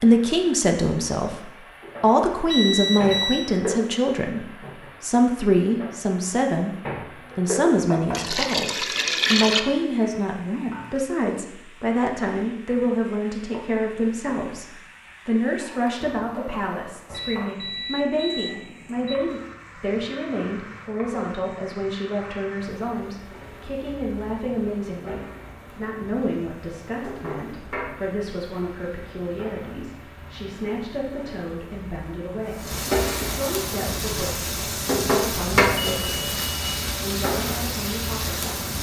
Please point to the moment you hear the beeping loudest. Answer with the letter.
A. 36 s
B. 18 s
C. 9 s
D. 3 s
D.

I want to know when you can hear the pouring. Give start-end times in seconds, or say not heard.
8.1-9.6.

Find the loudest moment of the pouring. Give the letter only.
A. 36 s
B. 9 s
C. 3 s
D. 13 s
B.